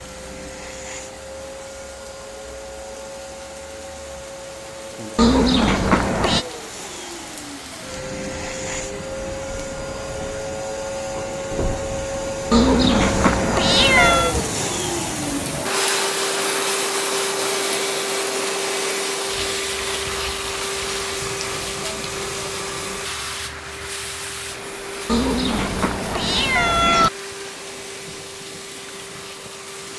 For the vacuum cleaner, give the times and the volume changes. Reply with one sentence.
You can hear the vacuum cleaner from 0.0 to 29.9 s, getting louder then quieter.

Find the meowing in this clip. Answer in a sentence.
You can hear the meowing from 5.2 to 6.5 s, from 12.5 to 14.3 s and from 25.1 to 27.1 s.